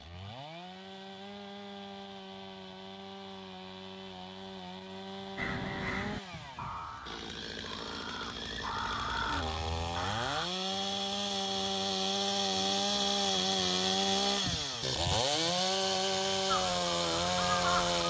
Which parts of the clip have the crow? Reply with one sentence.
You can hear the crow from 5.3 to 10.5 s and from 16.4 to 18.0 s.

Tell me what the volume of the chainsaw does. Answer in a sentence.
The loudness of the chainsaw goes up.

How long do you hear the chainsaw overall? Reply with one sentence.
The chainsaw can be heard for 18 seconds in total.